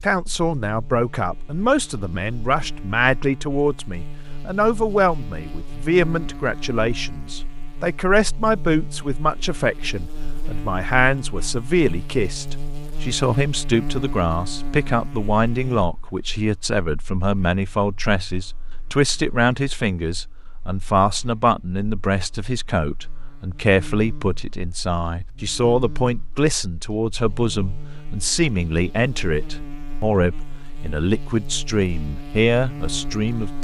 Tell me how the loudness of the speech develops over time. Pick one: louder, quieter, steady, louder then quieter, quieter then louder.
steady.